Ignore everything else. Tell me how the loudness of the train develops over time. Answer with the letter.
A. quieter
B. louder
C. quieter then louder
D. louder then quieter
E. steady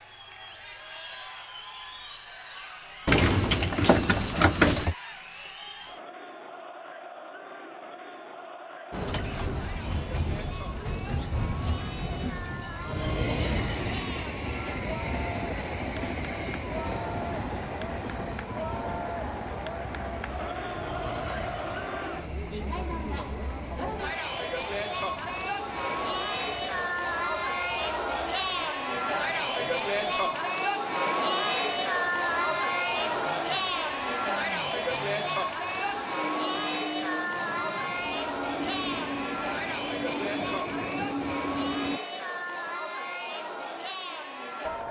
C.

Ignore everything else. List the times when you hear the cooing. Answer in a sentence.
The cooing can be heard from 3.0 to 5.0 s.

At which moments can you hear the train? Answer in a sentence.
The train can be heard from 8.9 to 42.0 s.